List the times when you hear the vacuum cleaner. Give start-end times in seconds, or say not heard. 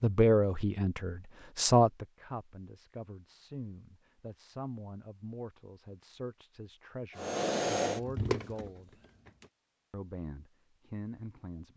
7.2-9.4.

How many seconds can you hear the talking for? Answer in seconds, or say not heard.
11 s.